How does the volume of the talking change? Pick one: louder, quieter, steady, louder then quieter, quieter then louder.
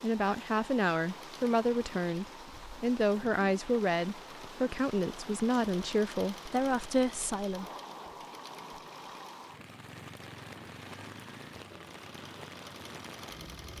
steady.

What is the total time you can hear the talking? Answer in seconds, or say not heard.
8 s.